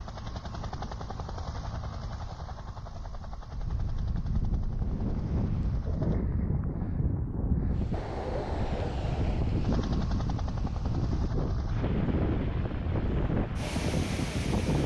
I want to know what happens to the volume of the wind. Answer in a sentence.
The loudness of the wind goes up.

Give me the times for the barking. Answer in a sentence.
The barking can't be heard in this clip.